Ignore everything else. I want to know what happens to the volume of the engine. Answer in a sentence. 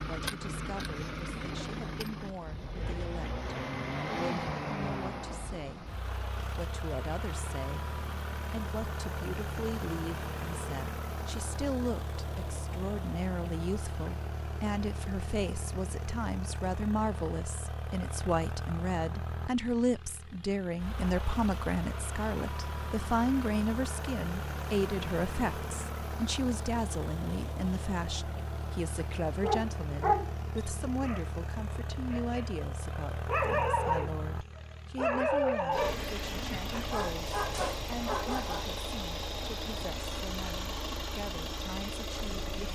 The volume of the engine stays about the same.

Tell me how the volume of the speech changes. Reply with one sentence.
The volume of the speech goes up, then down.